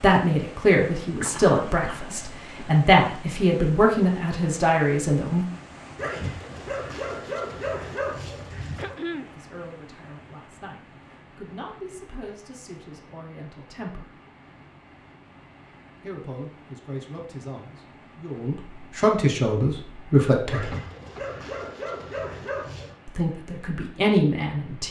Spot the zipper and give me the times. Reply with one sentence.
The zipper can't be heard in this clip.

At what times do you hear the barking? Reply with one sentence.
You can hear the barking from 6.0 to 8.9 s and from 20.4 to 22.9 s.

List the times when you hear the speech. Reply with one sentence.
You can hear the speech from 0.0 to 5.5 s, from 9.3 to 14.2 s, from 16.0 to 20.7 s and from 23.1 to 24.8 s.